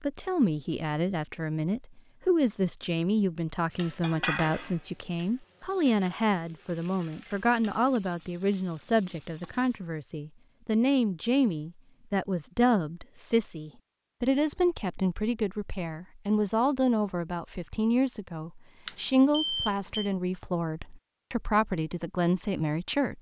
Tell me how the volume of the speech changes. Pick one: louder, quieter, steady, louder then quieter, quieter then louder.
steady.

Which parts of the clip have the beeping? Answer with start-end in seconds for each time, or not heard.
18.9-20.1.